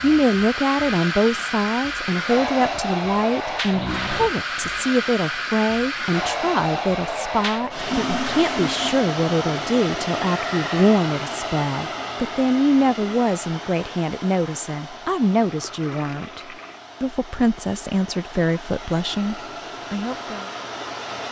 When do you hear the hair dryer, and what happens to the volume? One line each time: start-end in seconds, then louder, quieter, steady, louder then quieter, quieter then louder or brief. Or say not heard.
0.0-21.2 quieter.